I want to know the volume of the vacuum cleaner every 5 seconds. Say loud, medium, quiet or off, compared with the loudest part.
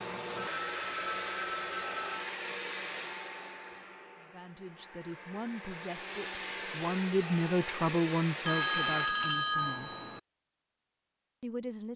loud, loud, off.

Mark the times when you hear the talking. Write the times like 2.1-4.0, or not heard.
4.2-9.9, 11.4-11.9.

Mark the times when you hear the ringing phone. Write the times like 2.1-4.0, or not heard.
0.3-2.3, 8.4-10.2.